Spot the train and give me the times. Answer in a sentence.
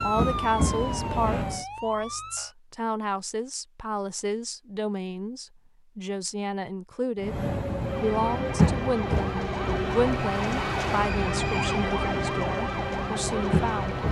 You can hear the train from 0.0 to 1.6 s and from 7.2 to 14.0 s.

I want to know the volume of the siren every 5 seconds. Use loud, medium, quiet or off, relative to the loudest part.
medium, loud, loud.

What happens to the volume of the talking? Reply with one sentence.
The volume of the talking stays about the same.